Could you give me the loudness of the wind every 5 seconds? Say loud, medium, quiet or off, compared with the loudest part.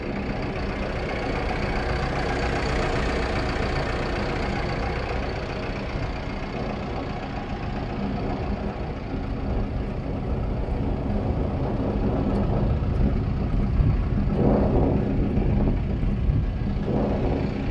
medium, medium, loud, loud.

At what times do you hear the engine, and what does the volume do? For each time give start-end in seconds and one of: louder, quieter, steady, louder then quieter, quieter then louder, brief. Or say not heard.
0.0-17.6 quieter.